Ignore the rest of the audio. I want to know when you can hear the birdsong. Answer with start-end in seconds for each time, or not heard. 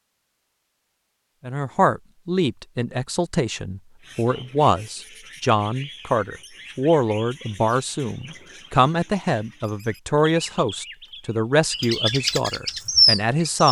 4.0-13.6.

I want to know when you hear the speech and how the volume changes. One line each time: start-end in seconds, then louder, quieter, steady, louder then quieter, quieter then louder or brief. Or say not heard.
1.4-13.6 steady.